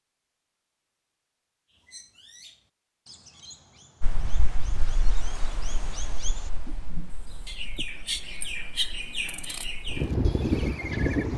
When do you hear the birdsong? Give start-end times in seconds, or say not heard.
1.7-11.3.